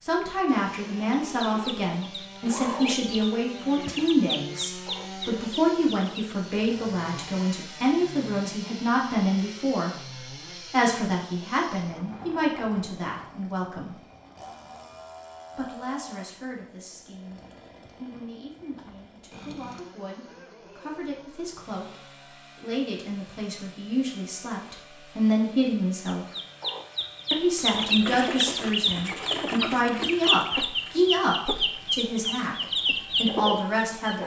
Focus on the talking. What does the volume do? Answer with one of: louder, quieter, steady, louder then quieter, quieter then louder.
quieter then louder.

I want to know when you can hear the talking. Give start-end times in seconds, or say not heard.
0.0-14.0, 15.6-26.2, 27.3-34.2.